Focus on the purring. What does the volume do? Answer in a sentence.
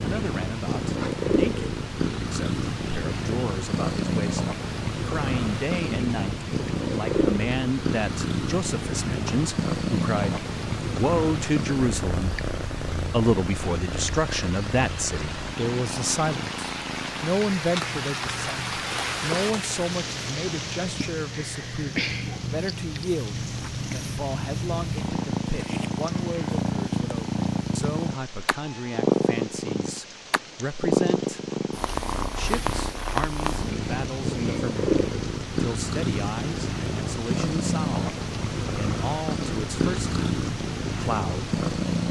The volume of the purring goes down, then up.